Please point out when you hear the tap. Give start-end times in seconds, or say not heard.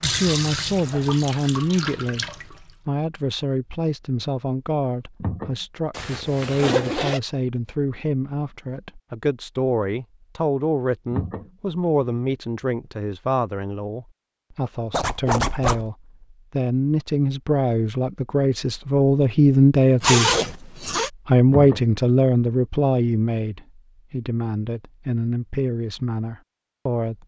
0.0-2.8.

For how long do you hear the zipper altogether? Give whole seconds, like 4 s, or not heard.
3 s.